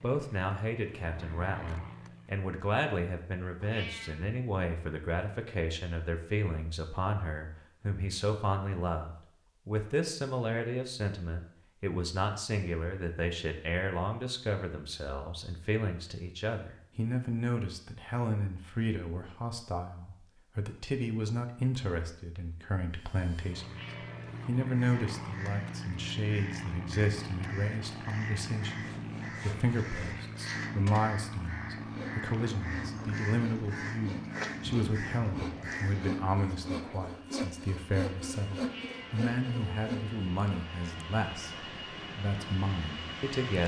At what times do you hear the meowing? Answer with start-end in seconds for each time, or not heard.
3.6-4.2, 23.6-24.4, 38.5-39.2.